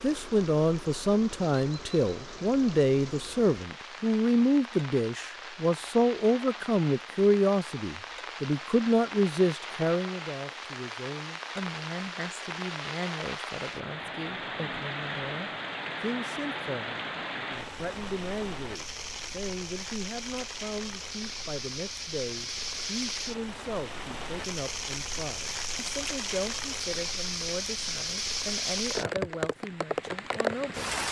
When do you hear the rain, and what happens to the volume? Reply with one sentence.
The rain can be heard from 0.0 to 31.0 s, getting louder.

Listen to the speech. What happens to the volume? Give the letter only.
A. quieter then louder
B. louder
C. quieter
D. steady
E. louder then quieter
C.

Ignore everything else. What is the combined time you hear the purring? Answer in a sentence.
The purring can't be heard in this clip.